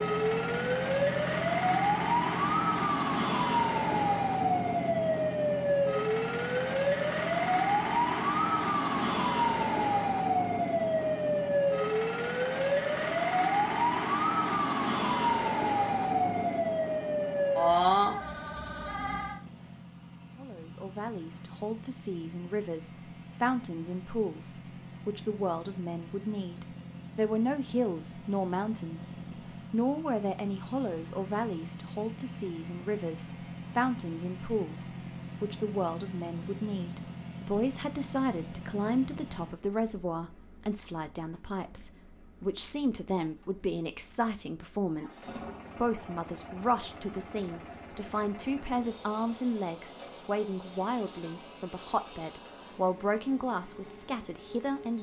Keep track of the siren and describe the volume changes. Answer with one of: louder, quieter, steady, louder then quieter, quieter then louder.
steady.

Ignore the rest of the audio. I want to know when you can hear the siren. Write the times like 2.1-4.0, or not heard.
0.0-19.4.